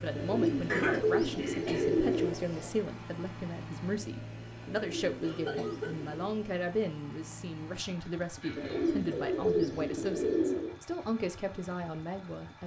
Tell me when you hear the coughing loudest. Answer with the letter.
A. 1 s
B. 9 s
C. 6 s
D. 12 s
A.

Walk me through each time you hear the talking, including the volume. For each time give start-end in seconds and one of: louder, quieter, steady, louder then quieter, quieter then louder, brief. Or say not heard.
0.0-12.6 steady.